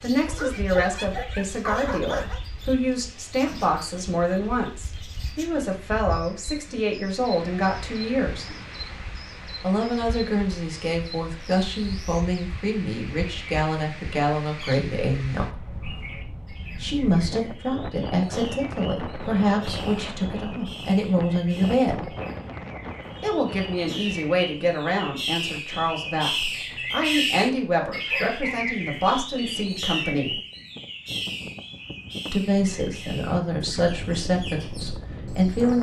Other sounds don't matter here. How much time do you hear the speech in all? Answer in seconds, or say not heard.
30 s.